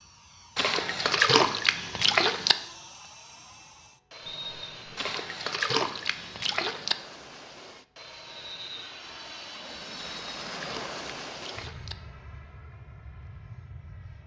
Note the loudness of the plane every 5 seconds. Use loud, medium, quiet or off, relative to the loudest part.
medium, loud, loud.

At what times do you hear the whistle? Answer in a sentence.
You can hear the whistle from 4.2 to 5.2 s and from 8.2 to 8.8 s.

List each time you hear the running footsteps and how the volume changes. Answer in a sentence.
You can't hear the running footsteps here.